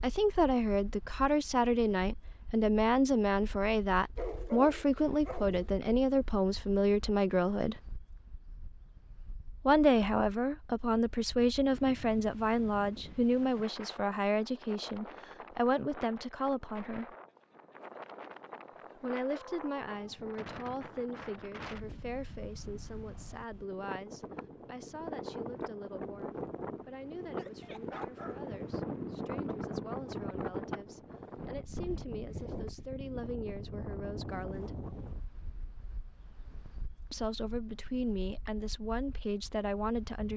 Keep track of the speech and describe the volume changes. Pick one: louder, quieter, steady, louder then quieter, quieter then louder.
quieter then louder.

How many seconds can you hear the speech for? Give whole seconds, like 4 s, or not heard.
34 s.